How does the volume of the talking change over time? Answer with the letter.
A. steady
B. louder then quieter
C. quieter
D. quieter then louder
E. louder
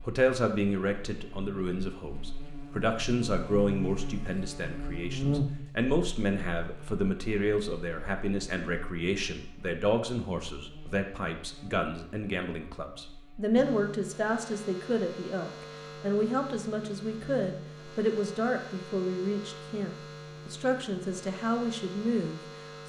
A.